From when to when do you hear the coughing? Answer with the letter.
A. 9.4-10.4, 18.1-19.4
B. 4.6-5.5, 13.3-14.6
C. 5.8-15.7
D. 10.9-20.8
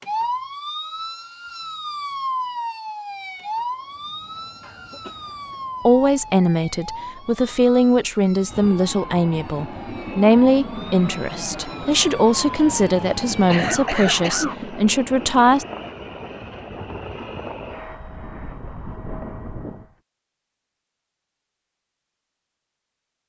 B.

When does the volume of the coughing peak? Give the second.
14 s.